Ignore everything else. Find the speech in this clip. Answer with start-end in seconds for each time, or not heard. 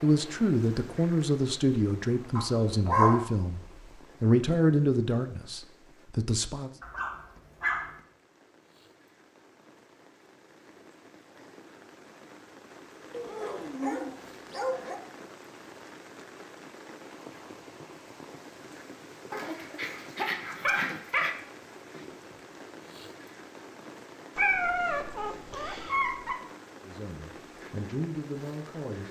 0.0-6.7, 26.9-29.0.